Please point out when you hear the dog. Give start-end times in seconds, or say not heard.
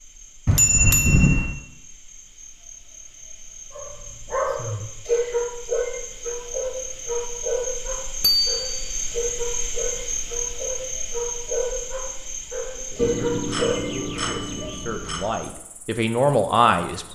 3.8-14.2.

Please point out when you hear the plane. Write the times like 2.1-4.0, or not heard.
not heard.